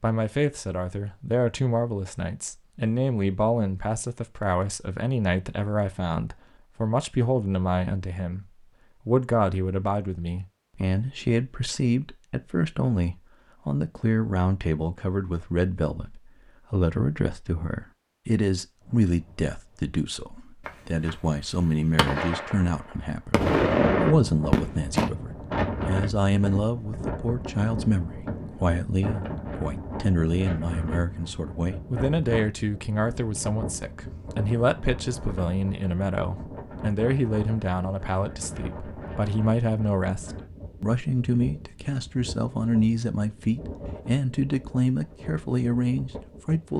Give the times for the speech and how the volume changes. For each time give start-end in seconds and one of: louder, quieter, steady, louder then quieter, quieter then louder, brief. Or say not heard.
0.0-46.7 steady.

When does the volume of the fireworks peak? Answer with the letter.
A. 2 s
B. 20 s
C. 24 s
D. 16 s
C.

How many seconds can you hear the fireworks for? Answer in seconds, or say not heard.
6 s.